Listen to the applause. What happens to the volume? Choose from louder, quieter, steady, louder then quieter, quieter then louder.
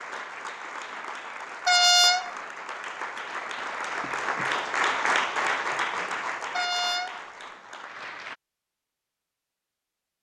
louder then quieter.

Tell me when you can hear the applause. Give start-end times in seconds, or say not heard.
0.0-8.3.